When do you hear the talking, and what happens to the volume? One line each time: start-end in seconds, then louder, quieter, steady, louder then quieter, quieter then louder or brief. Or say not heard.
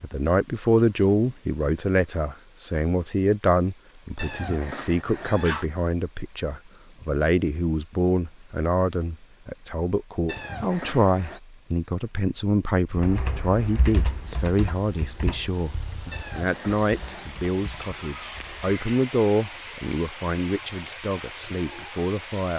0.0-22.5 steady.